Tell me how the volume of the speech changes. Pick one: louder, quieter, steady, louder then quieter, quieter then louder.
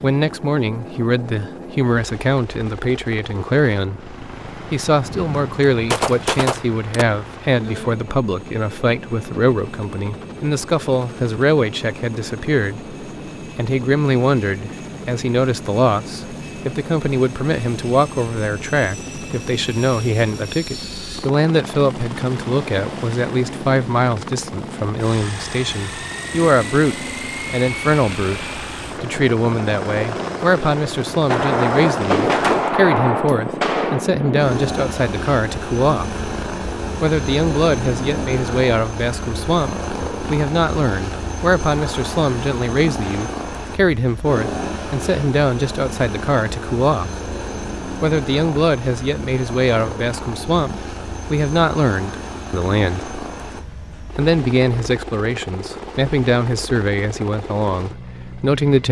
steady.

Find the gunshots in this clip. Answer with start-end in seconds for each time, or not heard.
5.0-7.0, 31.3-34.0.